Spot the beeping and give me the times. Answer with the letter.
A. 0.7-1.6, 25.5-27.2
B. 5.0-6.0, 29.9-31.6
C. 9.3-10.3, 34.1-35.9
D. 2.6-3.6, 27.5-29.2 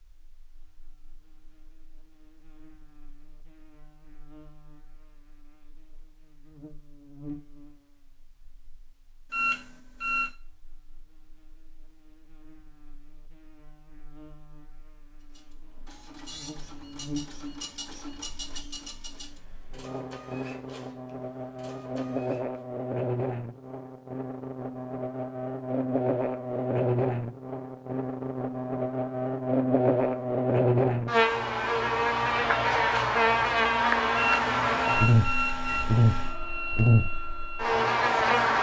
C.